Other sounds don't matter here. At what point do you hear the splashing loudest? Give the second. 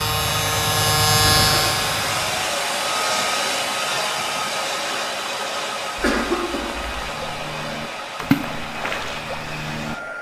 8 s.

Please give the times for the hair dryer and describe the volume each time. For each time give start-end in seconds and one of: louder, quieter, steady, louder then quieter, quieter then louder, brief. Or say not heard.
0.0-10.1 quieter.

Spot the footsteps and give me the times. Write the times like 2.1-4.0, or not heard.
not heard.